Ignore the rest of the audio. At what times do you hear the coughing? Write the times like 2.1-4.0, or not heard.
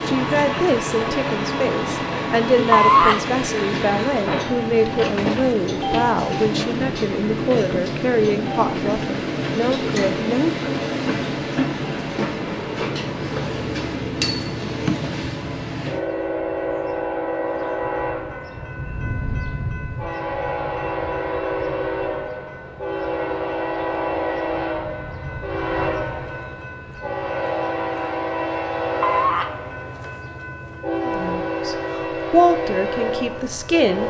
not heard.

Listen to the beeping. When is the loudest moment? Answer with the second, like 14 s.
3 s.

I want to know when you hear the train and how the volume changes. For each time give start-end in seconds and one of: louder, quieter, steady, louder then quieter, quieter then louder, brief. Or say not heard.
0.0-34.0 steady.